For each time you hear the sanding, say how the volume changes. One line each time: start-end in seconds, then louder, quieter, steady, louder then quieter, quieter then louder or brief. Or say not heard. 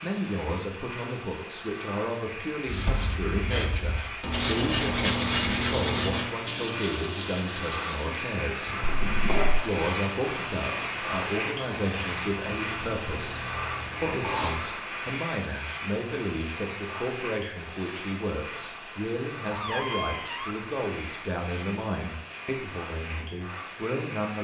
2.6-14.6 quieter.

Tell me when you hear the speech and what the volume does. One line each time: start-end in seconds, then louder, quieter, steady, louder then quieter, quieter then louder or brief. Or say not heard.
0.0-24.3 steady.